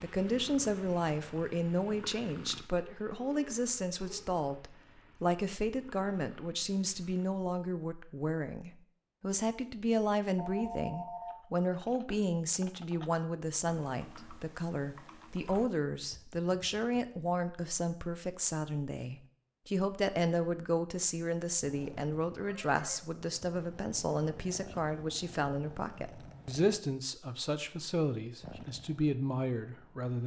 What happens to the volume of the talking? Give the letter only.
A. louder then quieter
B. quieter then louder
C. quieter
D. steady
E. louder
D.